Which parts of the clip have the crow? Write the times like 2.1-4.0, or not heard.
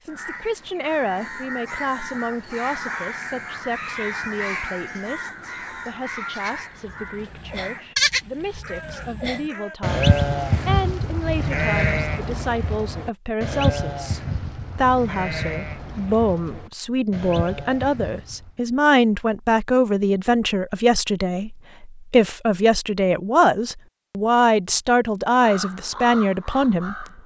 0.1-9.9, 25.4-27.2.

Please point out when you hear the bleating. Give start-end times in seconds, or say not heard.
6.3-18.5.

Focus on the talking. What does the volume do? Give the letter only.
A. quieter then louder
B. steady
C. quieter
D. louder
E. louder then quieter
D.